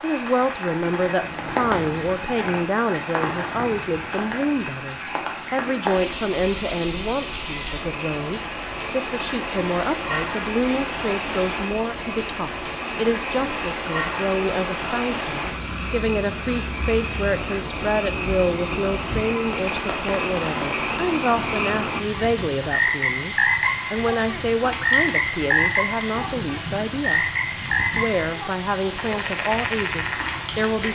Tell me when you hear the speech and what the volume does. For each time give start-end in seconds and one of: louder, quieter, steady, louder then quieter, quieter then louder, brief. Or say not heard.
0.0-27.2 steady
27.9-30.8 brief.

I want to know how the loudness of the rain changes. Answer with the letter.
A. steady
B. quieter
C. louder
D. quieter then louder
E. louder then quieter
A.